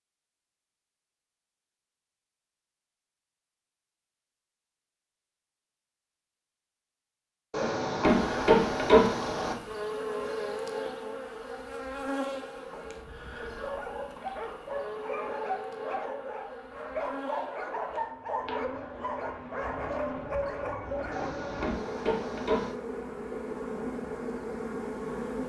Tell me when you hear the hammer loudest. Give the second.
9 s.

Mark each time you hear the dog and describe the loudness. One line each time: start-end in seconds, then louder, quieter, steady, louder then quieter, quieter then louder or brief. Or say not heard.
13.4-21.3 steady.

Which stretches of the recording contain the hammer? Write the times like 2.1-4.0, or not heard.
7.5-9.6, 21.1-22.8.